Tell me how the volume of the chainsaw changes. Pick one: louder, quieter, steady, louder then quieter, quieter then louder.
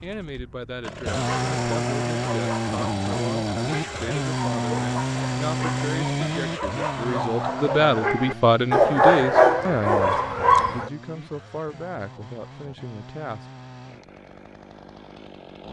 quieter.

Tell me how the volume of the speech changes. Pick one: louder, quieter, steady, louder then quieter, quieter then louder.
louder then quieter.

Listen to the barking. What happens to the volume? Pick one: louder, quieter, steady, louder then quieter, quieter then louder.
louder.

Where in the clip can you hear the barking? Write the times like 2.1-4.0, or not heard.
1.2-10.9.